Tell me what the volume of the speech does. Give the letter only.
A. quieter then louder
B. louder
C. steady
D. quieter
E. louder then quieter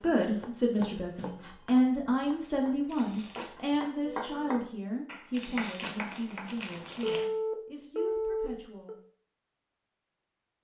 D.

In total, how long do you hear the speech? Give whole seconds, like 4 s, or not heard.
9 s.